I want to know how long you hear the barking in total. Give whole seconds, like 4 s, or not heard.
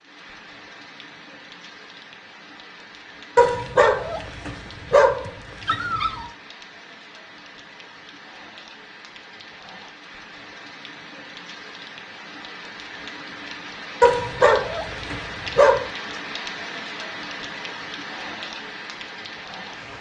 5 s.